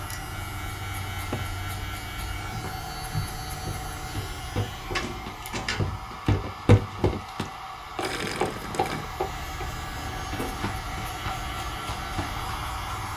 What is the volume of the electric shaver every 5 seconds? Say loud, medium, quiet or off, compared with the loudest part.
loud, medium, loud.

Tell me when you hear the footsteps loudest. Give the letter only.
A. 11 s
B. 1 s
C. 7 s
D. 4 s
C.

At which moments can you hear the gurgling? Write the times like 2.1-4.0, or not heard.
8.0-9.1.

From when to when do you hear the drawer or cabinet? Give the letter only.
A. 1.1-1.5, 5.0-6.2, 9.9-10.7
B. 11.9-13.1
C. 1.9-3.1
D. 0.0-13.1
A.